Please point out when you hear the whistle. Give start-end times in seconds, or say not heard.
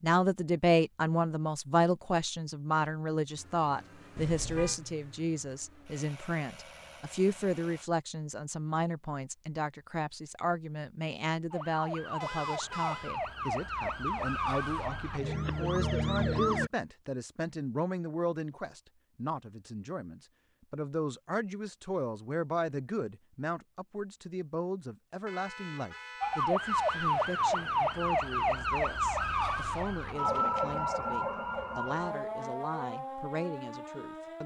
not heard.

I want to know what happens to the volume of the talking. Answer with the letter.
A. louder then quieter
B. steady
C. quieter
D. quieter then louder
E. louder
C.